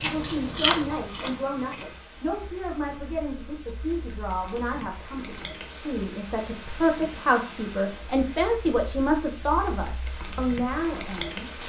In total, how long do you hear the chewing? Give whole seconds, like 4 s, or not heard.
2 s.